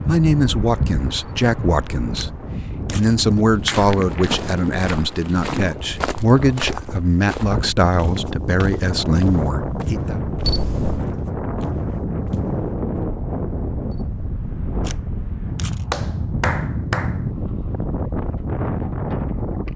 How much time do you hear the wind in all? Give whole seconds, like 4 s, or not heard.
20 s.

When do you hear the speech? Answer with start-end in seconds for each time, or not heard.
0.0-10.2.